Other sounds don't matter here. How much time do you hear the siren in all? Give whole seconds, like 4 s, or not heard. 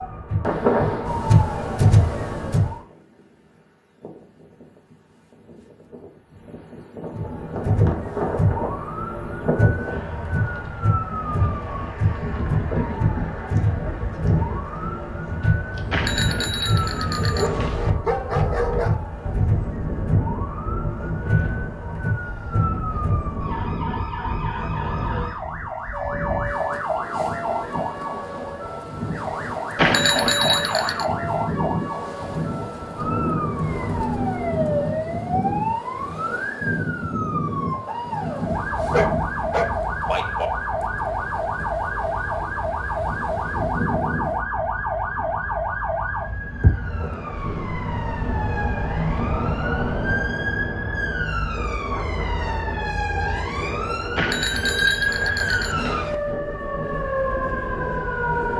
54 s.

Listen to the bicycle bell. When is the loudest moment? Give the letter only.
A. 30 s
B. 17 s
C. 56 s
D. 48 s
A.